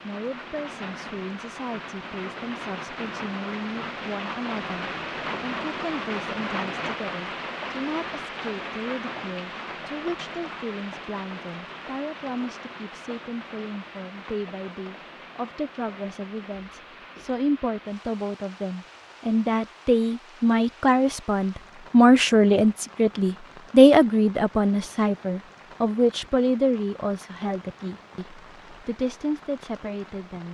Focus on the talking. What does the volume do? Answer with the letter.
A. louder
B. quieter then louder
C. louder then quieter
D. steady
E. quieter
C.